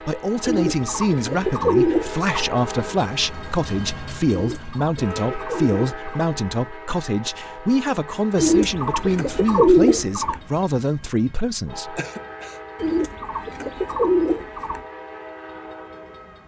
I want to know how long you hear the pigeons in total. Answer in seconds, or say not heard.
8 s.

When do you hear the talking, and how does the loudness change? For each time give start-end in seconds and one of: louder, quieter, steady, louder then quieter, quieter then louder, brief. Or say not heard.
0.1-12.0 steady.